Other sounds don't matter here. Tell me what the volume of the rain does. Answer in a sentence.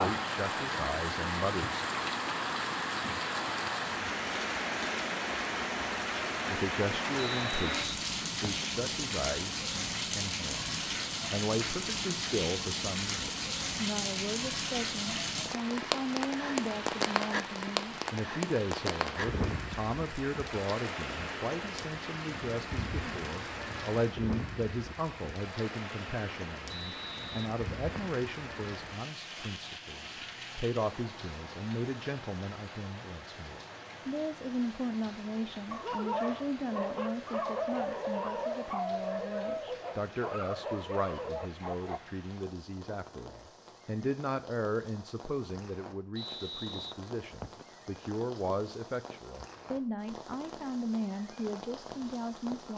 The volume of the rain goes down.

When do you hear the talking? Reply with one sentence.
You can hear the talking from 0.0 to 1.9 s and from 6.5 to 52.7 s.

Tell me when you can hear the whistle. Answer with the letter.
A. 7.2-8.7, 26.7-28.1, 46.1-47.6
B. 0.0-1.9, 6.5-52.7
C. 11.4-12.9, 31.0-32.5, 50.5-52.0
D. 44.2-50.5
A.